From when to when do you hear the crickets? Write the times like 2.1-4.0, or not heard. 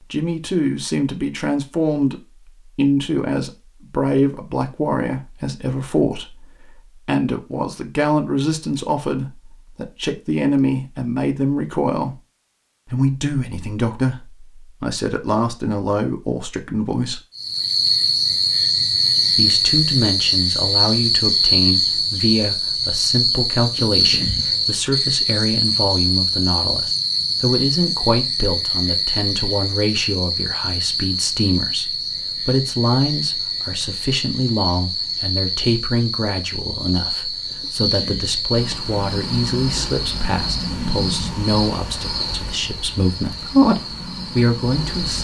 17.4-45.2.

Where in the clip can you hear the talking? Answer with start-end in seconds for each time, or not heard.
0.1-12.2, 12.9-17.2, 19.4-43.4, 44.3-45.2.